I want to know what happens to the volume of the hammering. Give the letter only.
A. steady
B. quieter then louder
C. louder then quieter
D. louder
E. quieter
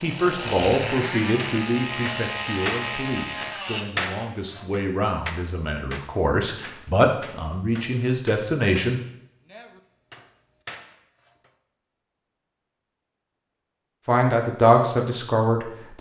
E.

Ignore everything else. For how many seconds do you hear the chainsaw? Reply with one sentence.
You can hear the chainsaw for 4 seconds altogether.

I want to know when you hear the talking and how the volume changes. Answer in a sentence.
You can hear the talking from 0.0 to 9.0 s, getting quieter then louder; and briefly from 14.1 to 15.9 s.